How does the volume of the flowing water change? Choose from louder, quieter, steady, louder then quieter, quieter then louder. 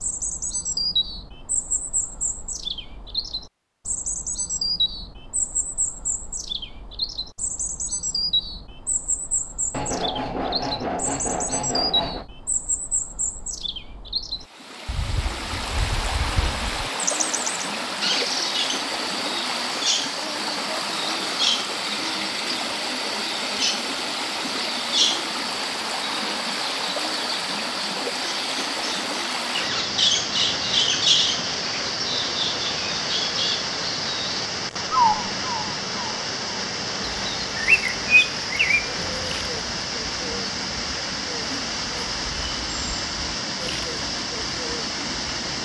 steady.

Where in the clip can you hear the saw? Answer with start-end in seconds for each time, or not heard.
9.7-12.2.